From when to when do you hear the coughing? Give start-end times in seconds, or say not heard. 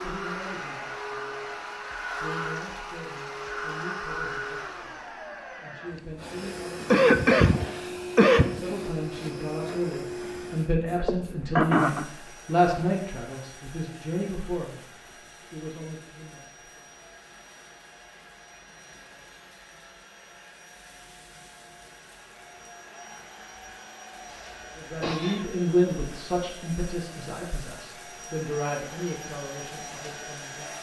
6.9-8.6, 11.0-12.1, 24.2-25.4.